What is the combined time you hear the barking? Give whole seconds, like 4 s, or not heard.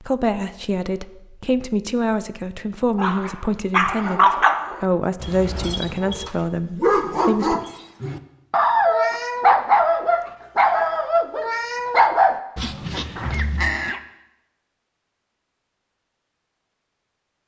11 s.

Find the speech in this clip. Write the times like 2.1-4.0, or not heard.
0.0-7.6.